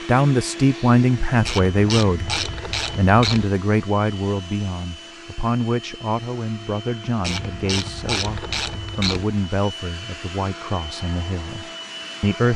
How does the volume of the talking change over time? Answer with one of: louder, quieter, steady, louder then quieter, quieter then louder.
quieter.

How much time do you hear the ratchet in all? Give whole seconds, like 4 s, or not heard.
4 s.